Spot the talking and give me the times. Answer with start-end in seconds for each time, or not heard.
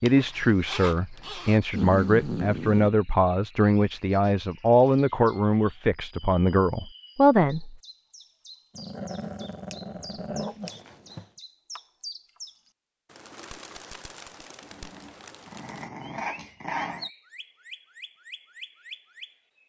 0.0-7.8.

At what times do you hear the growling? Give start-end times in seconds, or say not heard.
1.7-2.9, 8.8-11.2, 14.6-17.1.